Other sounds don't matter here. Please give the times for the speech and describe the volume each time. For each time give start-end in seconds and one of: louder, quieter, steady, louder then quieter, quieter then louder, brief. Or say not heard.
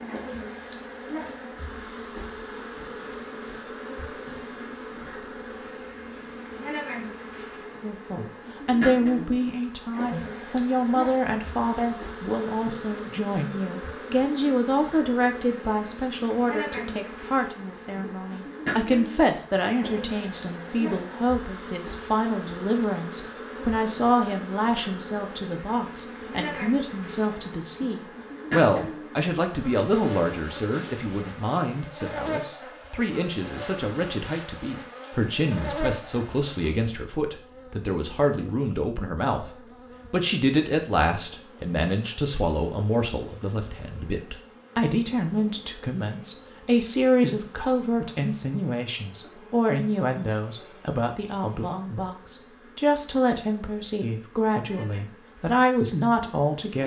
7.8-56.8 steady.